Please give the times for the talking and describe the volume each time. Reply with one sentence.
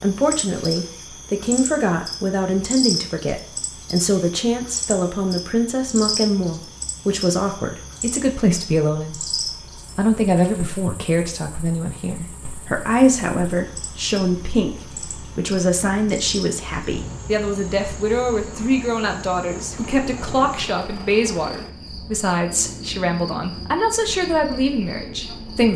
You can hear the talking from 0.0 to 25.7 s, at a steady volume.